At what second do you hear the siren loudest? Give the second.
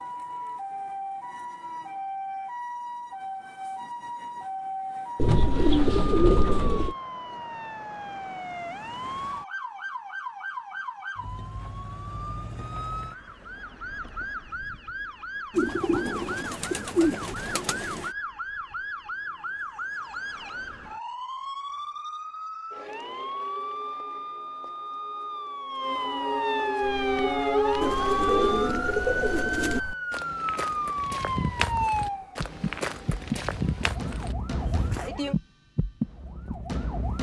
28 s.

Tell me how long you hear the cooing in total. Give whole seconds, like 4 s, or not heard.
6 s.